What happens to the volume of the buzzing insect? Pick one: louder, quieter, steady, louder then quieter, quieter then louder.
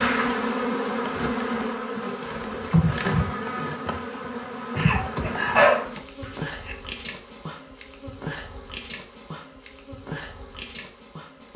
quieter.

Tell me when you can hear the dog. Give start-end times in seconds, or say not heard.
4.8-6.8.